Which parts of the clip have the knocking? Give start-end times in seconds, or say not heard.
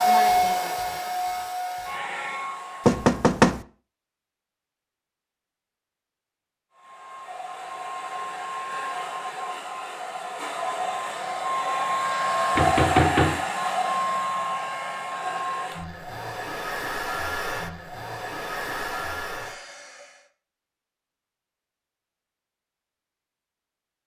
2.9-3.6, 12.6-13.4.